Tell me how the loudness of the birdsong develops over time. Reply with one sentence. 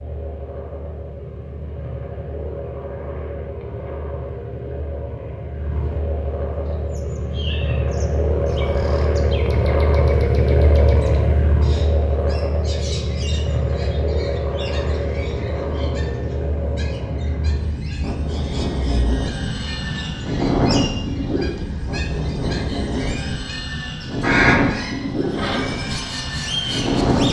The loudness of the birdsong goes up.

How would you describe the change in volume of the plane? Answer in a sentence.
The loudness of the plane goes up.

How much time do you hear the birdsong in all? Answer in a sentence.
The birdsong can be heard for 20 seconds in total.